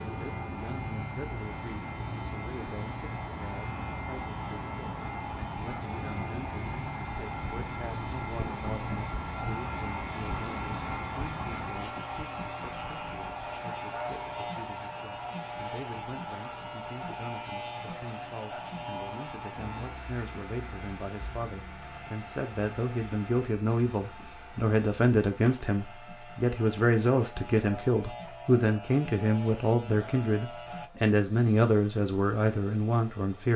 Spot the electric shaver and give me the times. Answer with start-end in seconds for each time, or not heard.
0.0-30.9.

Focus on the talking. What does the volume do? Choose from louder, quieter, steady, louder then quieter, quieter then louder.
louder.